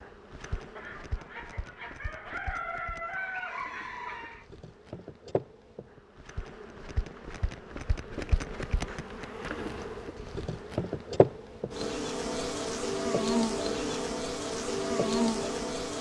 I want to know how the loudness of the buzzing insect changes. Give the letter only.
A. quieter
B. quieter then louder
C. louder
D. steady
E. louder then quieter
C.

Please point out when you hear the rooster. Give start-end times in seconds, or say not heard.
0.8-4.5.